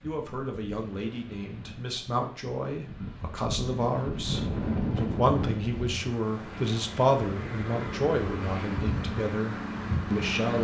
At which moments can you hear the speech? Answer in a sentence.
You can hear the speech from 0.0 to 10.5 s.